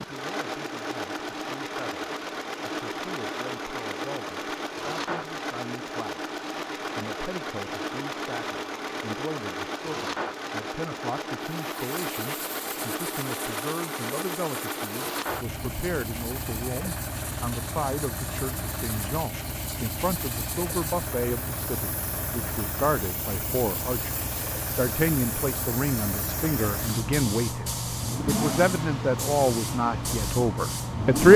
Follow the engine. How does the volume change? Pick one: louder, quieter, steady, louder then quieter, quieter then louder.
steady.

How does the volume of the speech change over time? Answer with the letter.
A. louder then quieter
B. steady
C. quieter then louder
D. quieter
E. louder
E.